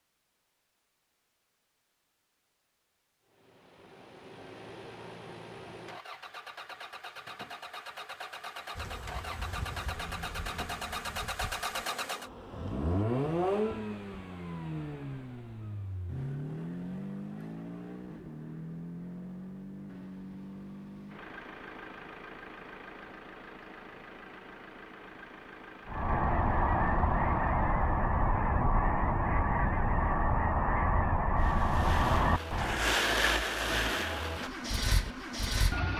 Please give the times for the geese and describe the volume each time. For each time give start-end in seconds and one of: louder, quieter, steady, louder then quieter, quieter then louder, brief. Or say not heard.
25.9-32.9 steady.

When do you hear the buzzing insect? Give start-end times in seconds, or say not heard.
8.8-13.1.